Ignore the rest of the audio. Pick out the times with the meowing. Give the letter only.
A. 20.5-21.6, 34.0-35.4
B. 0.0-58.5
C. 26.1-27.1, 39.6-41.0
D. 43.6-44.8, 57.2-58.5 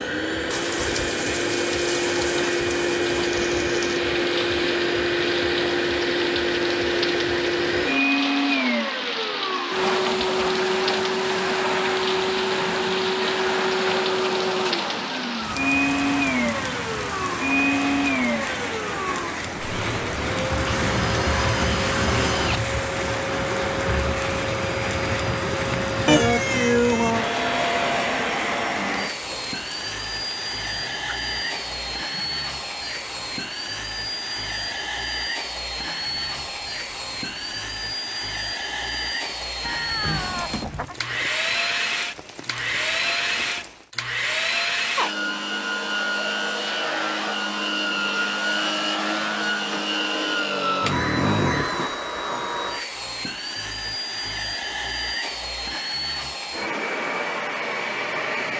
C.